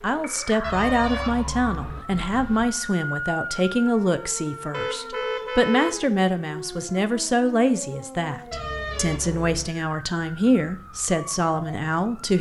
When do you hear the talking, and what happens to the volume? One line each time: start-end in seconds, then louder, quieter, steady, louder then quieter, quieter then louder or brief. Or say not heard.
0.0-12.3 steady.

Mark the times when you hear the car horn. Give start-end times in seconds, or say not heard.
0.6-2.6, 4.7-6.0, 8.5-9.7.